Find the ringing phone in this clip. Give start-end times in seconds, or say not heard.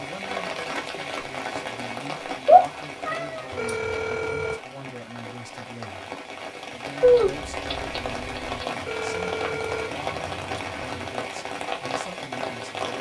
3.5-4.6, 8.8-10.9.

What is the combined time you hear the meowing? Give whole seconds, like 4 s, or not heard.
3 s.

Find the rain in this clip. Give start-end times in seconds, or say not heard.
0.0-12.9.